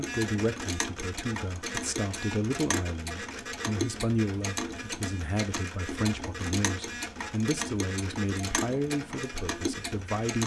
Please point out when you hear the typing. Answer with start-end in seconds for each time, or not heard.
not heard.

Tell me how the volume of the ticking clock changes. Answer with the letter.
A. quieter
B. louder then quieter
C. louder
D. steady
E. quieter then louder
D.